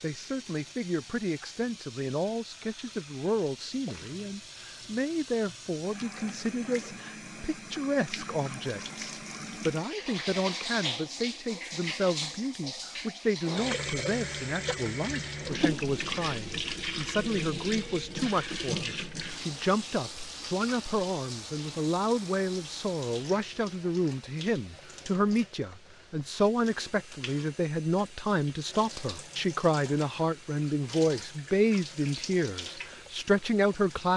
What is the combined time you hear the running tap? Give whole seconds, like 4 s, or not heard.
34 s.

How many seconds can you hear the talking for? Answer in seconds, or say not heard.
34 s.